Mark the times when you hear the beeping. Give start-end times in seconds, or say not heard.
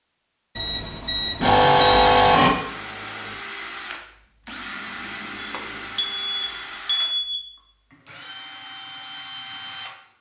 0.6-2.5, 5.3-7.4.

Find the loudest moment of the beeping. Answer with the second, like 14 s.
2 s.